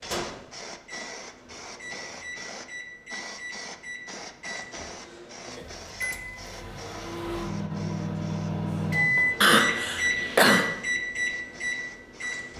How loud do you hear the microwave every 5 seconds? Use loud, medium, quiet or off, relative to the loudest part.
medium, loud, loud.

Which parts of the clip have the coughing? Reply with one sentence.
The coughing can be heard from 9.4 to 10.7 s.